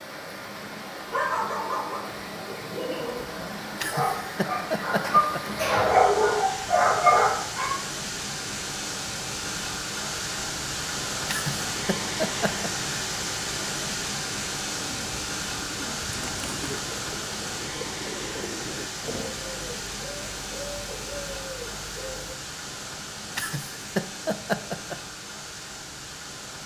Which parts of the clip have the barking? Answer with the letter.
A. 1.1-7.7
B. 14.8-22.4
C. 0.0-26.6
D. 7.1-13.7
A.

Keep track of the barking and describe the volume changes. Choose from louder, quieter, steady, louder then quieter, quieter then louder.
louder.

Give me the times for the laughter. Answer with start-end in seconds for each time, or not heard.
3.8-5.4, 11.2-12.7, 23.4-24.9.